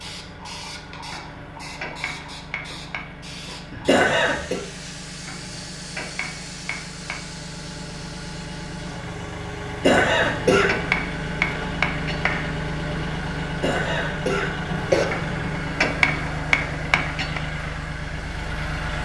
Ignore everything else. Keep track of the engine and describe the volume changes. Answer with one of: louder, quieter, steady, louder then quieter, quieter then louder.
louder.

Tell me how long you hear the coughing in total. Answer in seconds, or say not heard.
3 s.